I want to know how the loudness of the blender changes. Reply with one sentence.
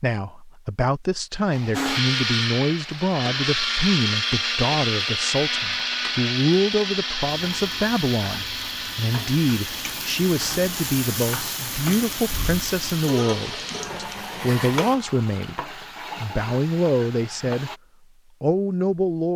The volume of the blender goes down.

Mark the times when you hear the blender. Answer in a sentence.
You can hear the blender from 1.7 to 14.9 s.